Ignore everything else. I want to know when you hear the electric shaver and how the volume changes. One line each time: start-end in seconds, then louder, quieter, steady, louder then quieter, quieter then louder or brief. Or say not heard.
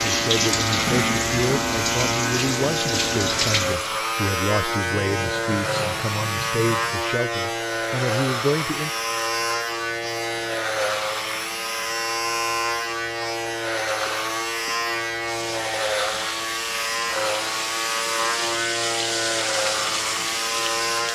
0.0-21.0 steady.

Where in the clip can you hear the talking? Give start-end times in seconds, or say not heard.
0.1-8.9.